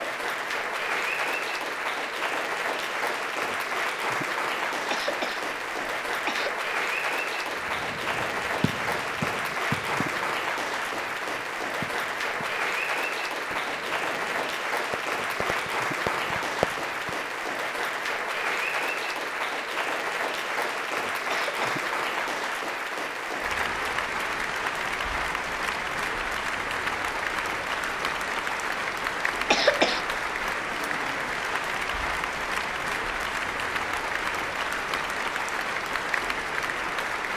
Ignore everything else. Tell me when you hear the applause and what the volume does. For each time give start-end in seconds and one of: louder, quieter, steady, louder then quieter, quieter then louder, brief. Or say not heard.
0.0-37.3 steady.